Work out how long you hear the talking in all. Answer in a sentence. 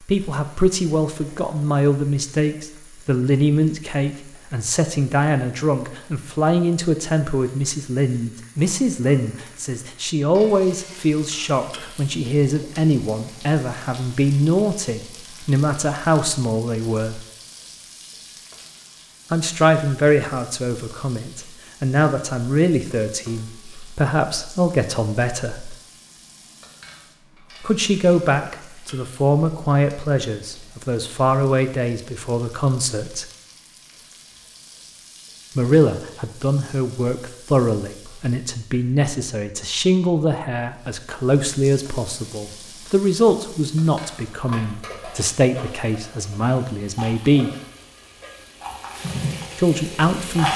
The talking can be heard for 42 seconds in total.